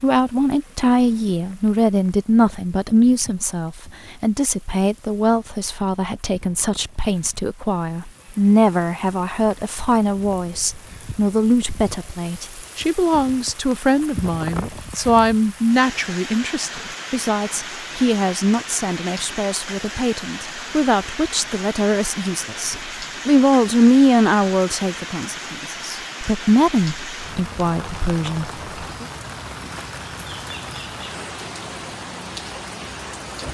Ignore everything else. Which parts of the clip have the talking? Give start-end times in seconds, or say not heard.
0.0-29.1.